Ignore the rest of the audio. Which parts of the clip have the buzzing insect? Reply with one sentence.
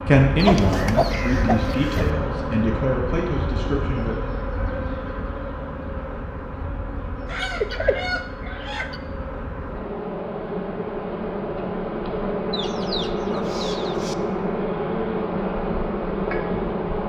You can hear the buzzing insect from 0.0 to 17.0 s.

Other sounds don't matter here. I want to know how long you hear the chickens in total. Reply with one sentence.
You can hear the chickens for 5 seconds altogether.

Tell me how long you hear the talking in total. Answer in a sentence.
You can hear the talking for 4 seconds altogether.